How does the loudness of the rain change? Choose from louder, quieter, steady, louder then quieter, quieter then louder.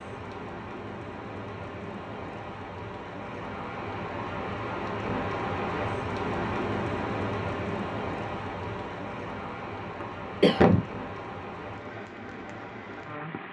louder then quieter.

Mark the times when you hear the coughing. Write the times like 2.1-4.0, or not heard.
10.0-10.8.